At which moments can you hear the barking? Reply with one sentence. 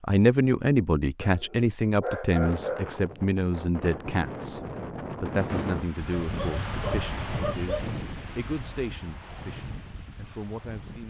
The barking can be heard from 1.2 to 3.0 s and from 6.1 to 7.8 s.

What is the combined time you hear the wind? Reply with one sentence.
The wind can be heard for 9 seconds in total.